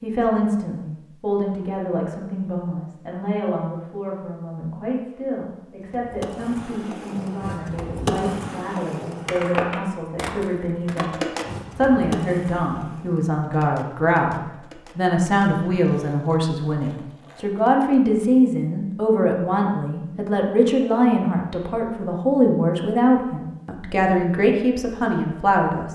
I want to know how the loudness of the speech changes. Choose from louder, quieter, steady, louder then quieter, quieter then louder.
louder.